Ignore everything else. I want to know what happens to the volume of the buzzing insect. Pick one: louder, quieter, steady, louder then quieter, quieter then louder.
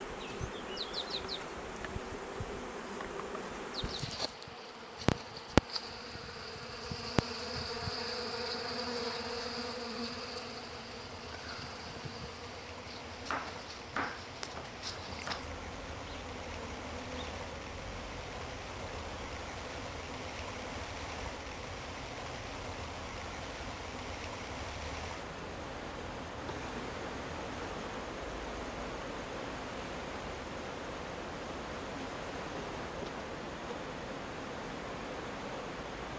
quieter.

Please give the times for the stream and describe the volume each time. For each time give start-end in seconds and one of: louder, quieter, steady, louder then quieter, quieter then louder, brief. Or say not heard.
0.0-36.1 louder.